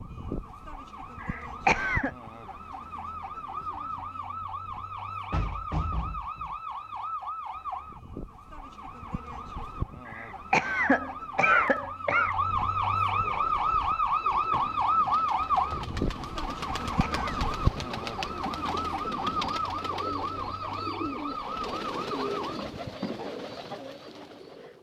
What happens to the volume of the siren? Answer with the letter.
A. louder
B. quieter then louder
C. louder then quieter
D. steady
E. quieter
C.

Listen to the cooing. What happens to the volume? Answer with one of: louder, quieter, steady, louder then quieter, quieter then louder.
louder.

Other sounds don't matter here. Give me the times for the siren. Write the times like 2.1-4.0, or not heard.
0.0-22.6.